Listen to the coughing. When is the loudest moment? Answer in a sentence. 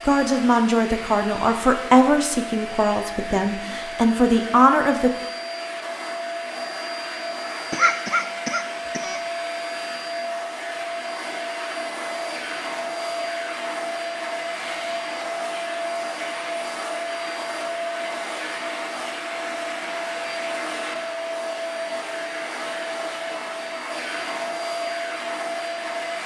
The volume of the coughing peaks at 8 seconds.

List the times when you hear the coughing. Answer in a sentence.
You can hear the coughing from 7.7 to 9.2 s.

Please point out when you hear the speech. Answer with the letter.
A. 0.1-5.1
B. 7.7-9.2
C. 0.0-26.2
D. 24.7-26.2
A.